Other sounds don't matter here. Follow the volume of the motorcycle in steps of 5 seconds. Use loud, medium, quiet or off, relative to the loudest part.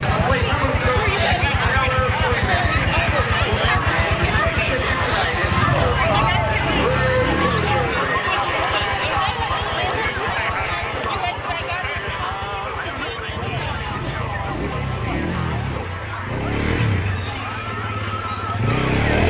loud, loud, medium, loud.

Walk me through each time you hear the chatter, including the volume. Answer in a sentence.
The chatter can be heard from 0.0 to 19.2 s, getting quieter.